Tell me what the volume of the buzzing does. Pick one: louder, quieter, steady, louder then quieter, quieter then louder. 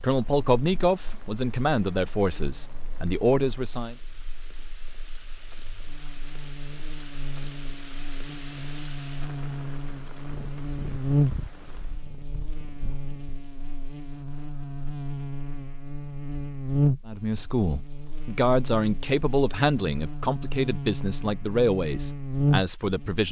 louder.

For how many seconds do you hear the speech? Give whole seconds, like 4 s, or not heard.
10 s.